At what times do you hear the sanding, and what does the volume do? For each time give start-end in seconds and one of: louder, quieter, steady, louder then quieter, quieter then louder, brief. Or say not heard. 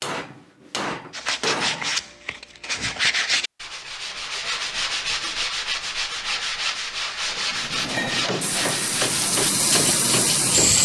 1.1-10.6 steady.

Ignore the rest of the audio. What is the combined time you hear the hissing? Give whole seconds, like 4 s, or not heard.
3 s.